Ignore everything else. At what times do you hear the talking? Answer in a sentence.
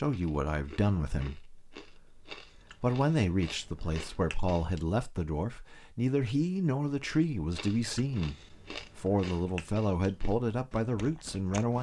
The talking can be heard from 0.0 to 11.7 s.